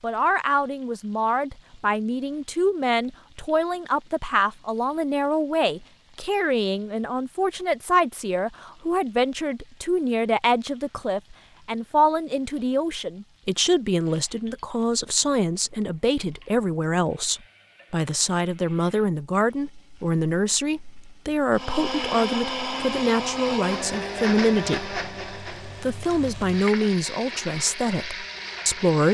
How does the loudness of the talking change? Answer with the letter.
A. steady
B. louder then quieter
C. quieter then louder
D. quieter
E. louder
A.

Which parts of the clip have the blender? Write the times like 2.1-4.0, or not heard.
21.5-29.0.